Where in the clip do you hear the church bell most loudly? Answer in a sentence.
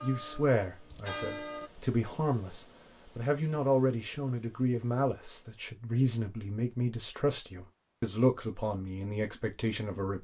The volume of the church bell peaks at 1 second.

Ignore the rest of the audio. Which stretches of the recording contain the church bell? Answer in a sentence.
The church bell can be heard from 0.0 to 1.7 s.